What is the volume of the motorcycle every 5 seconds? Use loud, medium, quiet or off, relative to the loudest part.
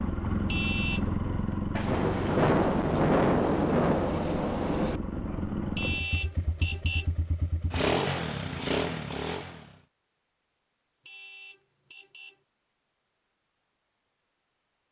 loud, loud, off.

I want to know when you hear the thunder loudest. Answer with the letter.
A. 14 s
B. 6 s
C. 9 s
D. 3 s
D.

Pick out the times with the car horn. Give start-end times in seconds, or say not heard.
0.5-1.1, 5.8-7.2, 11.0-12.4.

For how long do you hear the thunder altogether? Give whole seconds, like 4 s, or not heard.
3 s.